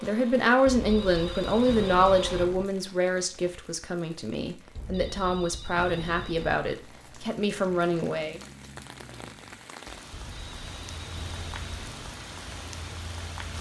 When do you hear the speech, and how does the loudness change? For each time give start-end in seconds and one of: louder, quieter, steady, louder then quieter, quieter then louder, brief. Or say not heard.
0.0-8.4 quieter then louder.